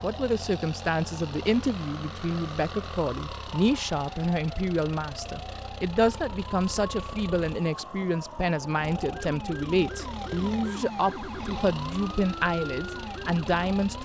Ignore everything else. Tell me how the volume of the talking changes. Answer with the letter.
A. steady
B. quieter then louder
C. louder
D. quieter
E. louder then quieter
A.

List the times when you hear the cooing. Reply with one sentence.
The cooing can't be heard in this clip.